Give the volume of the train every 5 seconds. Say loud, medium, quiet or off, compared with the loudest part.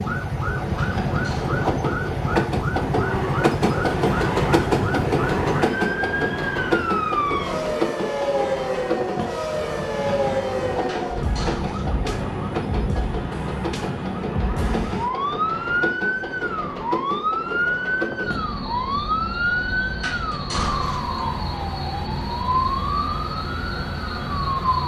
loud, loud, medium, medium, medium.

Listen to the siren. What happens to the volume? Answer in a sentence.
The volume of the siren stays about the same.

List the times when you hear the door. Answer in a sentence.
You can hear the door from 0.8 to 1.6 s, from 10.8 to 12.0 s and from 20.0 to 21.1 s.